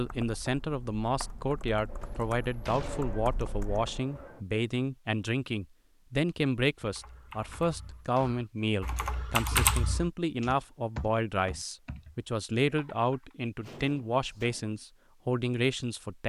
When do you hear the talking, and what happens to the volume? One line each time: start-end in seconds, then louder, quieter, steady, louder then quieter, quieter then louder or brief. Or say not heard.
0.0-16.2 steady.